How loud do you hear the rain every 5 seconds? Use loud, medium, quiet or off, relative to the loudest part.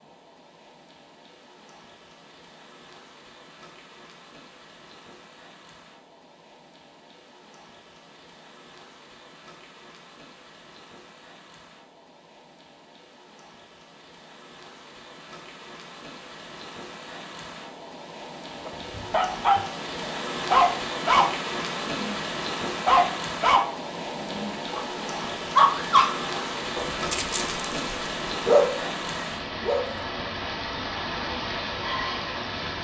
quiet, quiet, quiet, medium, loud, loud, loud.